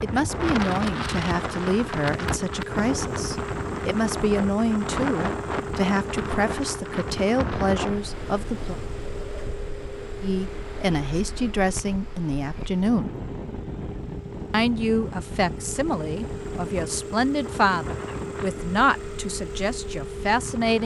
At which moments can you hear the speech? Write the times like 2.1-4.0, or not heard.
0.0-8.8, 10.2-13.2, 14.5-20.8.